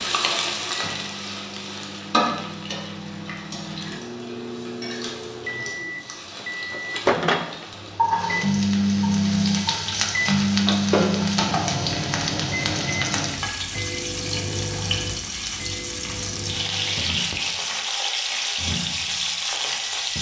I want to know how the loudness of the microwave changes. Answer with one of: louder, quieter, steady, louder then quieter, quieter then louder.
louder then quieter.